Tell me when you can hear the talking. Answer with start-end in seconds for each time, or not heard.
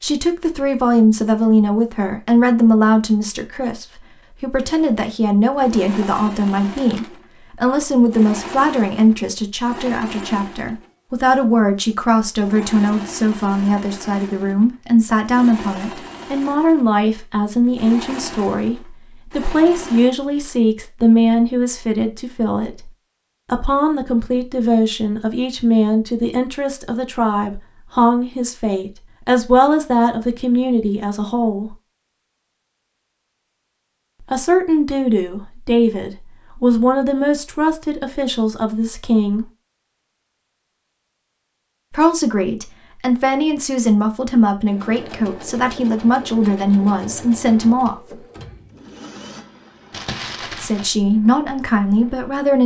0.0-31.8, 34.3-39.5, 41.9-48.0, 50.6-52.6.